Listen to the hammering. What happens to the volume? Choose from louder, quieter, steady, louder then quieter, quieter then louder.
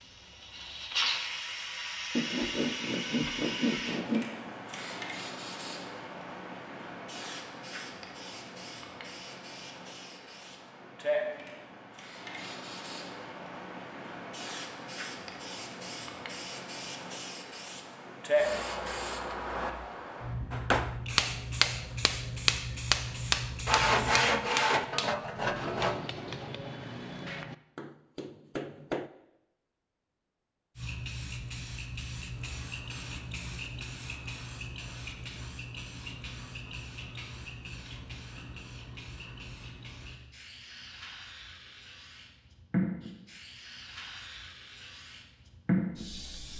quieter.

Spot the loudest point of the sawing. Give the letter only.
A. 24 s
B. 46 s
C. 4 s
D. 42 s
A.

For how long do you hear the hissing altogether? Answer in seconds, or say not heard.
40 s.